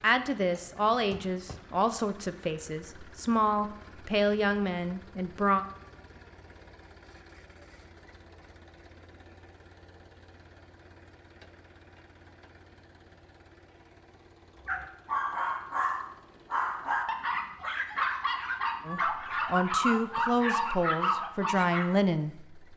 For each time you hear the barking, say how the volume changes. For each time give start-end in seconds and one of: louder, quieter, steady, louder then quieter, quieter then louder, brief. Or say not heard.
14.6-21.9 steady.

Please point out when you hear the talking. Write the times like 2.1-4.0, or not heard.
0.0-5.7, 18.9-22.7.